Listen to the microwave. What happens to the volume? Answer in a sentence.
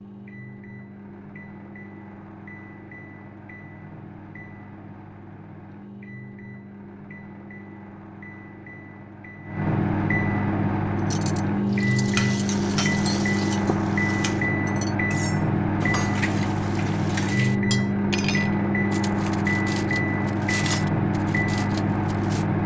The volume of the microwave goes up.